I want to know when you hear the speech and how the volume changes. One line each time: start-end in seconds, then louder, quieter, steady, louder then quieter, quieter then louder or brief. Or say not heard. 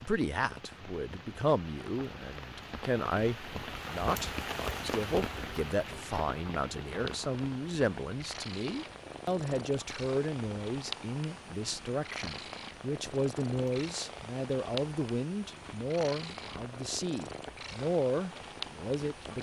0.0-19.3 steady.